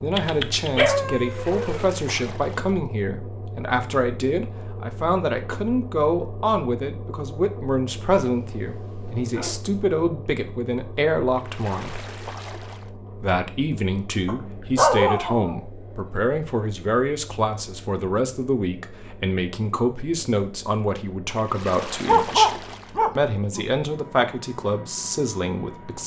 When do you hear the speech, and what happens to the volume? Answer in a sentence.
You can hear the speech from 0.0 to 12.1 s, at a steady volume; from 13.2 to 22.5 s, at a steady volume; and briefly from 23.1 to 26.0 s.